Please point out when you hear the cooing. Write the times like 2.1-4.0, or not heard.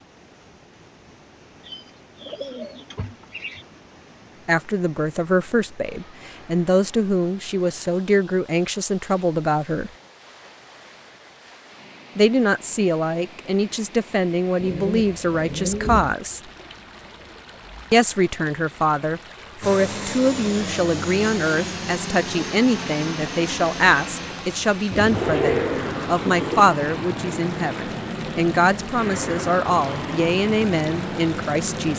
1.6-3.6, 14.6-16.1, 24.9-26.6.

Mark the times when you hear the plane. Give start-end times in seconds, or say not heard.
19.6-31.9.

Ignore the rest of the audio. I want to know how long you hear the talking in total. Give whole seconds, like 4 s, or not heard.
24 s.